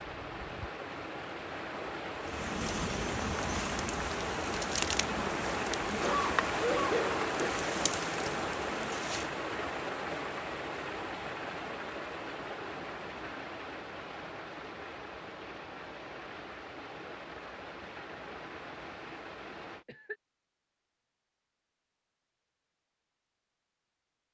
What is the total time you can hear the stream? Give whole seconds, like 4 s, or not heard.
20 s.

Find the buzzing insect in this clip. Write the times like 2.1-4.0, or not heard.
2.2-9.3.